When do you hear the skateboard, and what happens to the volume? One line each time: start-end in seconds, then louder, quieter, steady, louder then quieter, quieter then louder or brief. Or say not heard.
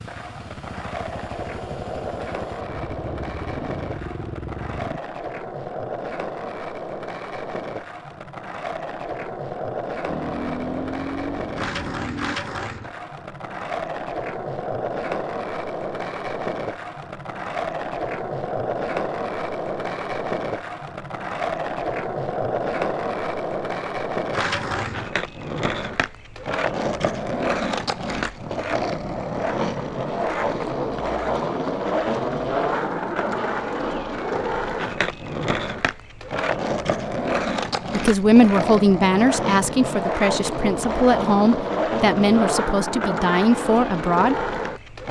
0.0-45.0 louder.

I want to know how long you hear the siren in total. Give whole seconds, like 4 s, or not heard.
not heard.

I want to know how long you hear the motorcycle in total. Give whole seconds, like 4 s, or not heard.
7 s.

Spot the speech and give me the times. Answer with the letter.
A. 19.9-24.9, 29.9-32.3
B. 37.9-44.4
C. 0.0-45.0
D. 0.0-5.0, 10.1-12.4
B.